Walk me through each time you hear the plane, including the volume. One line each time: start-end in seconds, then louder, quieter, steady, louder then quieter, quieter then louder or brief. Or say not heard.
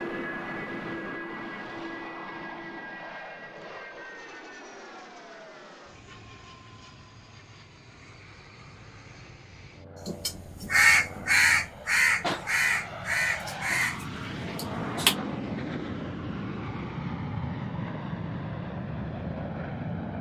0.0-20.1 quieter then louder.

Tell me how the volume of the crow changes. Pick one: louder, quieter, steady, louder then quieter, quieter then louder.
quieter.